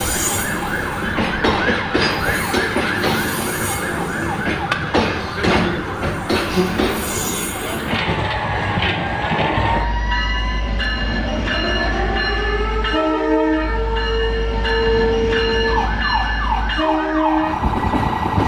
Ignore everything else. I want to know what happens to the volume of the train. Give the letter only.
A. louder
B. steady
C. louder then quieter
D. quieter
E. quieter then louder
B.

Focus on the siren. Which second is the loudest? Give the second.
15 s.